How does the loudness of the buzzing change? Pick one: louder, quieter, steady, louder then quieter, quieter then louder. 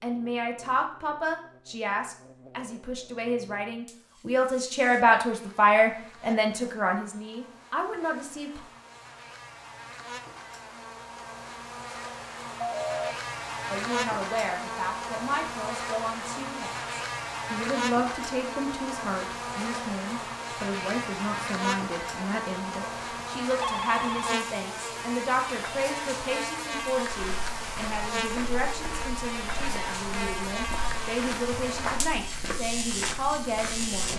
louder.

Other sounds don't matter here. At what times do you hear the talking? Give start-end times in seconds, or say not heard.
0.0-8.6, 13.7-34.1.